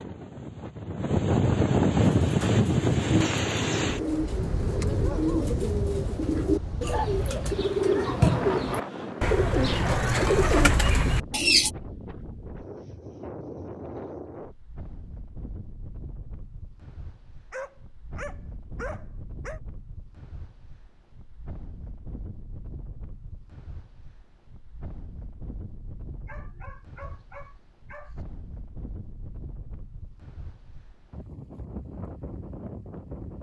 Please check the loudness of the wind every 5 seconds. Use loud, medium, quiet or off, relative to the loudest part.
loud, medium, quiet, quiet, quiet, quiet, quiet.